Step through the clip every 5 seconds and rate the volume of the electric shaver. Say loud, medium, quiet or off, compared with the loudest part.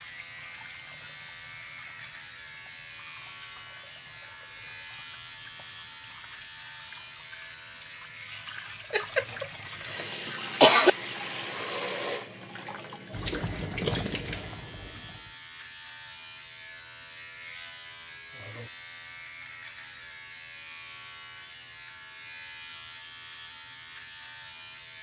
loud, loud, medium, loud, loud.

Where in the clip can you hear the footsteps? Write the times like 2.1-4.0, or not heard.
not heard.